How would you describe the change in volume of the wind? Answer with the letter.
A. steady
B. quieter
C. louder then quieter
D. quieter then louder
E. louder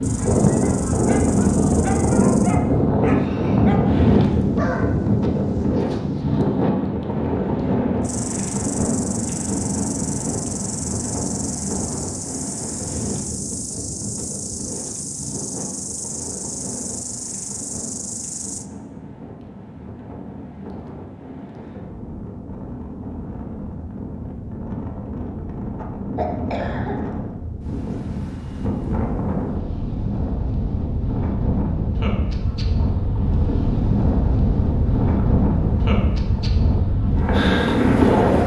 D.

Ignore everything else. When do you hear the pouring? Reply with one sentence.
The pouring can't be heard in this clip.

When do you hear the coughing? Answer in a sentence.
You can hear the coughing from 26.1 to 26.9 s.